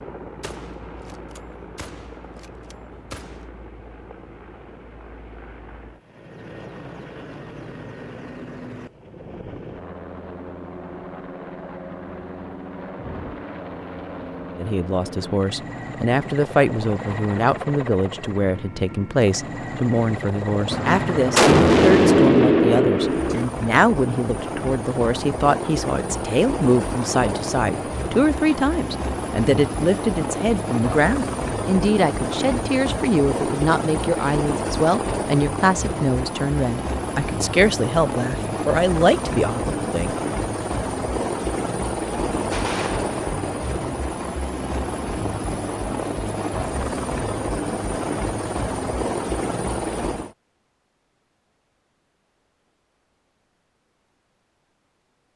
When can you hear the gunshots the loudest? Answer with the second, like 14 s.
22 s.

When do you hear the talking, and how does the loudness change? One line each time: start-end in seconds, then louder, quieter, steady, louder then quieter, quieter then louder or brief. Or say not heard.
14.6-40.1 steady.